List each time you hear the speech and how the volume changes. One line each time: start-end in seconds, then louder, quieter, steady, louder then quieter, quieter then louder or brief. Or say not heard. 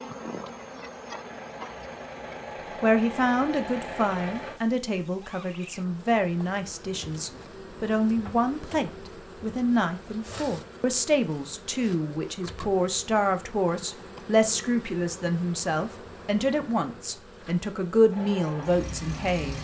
2.8-19.5 steady.